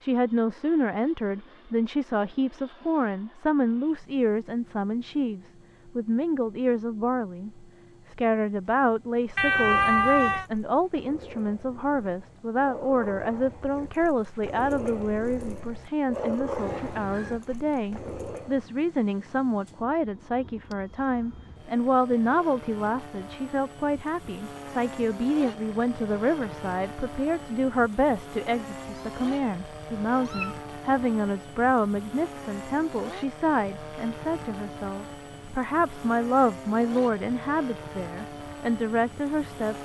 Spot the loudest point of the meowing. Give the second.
10 s.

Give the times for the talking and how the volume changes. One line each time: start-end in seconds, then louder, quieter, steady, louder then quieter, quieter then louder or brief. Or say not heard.
0.0-39.8 steady.